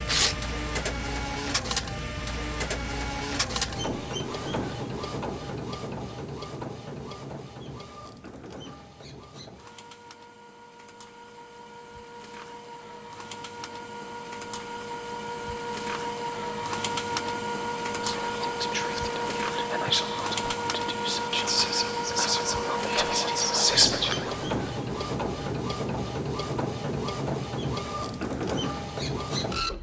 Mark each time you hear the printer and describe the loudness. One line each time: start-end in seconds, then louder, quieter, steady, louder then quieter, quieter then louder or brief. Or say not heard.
0.0-29.7 quieter then louder.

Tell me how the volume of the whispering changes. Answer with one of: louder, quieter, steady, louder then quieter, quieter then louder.
louder.